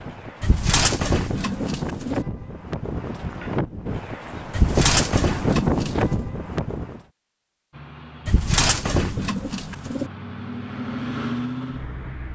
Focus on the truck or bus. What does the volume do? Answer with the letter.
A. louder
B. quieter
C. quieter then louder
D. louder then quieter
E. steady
A.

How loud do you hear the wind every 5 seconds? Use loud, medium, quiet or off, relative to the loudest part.
medium, loud, off.